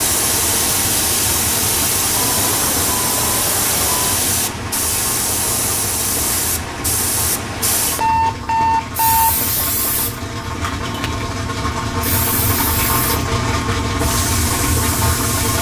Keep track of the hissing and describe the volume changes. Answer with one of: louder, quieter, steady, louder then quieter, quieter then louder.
quieter.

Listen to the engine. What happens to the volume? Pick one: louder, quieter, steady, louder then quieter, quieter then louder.
louder.